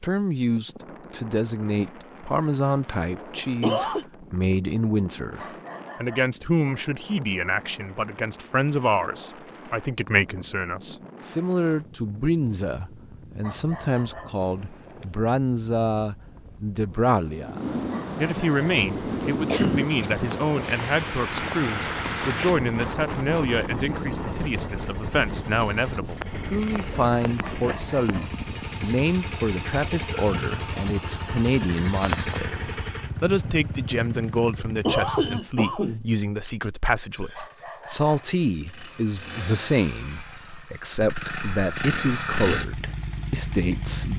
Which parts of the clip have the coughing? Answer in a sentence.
You can hear the coughing from 3.4 to 4.0 s, from 19.4 to 20.3 s and from 34.5 to 36.5 s.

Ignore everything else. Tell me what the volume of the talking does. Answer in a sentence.
The loudness of the talking stays about the same.